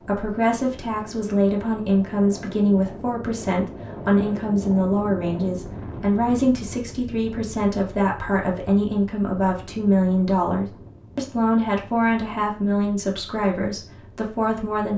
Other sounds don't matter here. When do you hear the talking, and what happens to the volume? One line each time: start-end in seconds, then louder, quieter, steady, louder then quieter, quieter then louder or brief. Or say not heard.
0.0-14.9 steady.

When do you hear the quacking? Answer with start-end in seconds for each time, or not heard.
not heard.